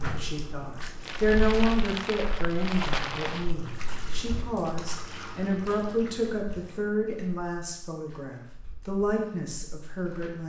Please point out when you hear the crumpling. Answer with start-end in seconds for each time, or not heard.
1.1-3.5.